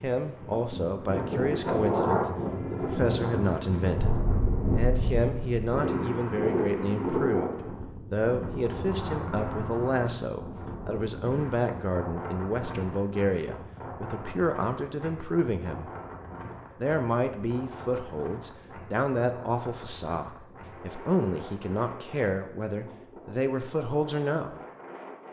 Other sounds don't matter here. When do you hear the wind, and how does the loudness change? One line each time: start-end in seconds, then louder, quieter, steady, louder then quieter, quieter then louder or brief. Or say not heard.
0.0-25.2 quieter.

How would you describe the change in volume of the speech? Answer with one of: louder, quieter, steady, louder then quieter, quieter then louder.
steady.